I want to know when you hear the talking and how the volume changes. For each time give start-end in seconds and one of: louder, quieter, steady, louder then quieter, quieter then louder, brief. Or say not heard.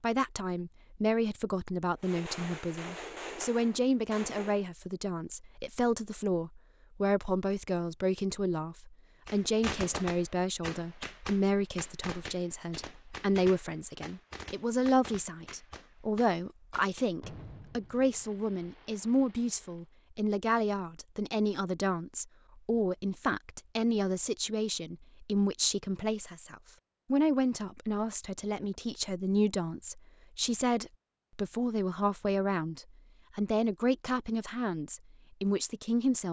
0.0-36.2 steady.